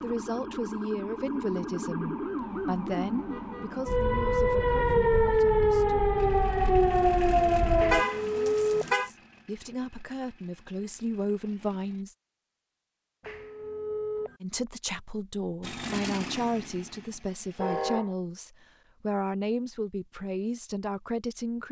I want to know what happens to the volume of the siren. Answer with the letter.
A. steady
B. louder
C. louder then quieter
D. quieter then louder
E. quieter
B.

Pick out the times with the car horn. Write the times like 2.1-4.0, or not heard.
7.9-9.1, 17.6-18.1.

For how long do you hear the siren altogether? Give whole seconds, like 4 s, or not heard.
8 s.